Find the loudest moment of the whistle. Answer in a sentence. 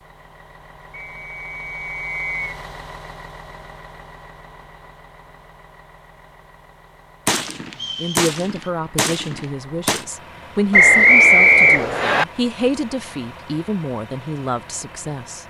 The volume of the whistle peaks at 11 seconds.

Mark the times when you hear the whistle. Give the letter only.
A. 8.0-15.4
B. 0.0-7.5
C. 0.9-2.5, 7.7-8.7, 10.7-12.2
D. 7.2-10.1
C.